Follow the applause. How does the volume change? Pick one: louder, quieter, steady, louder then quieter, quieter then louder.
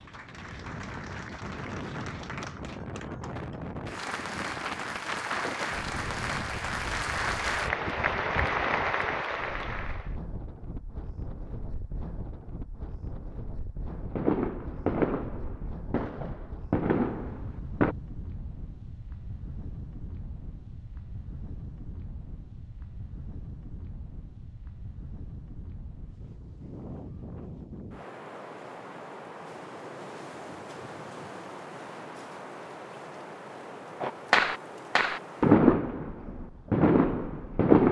louder.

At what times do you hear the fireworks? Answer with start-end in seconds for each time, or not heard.
13.8-17.9, 34.0-37.8.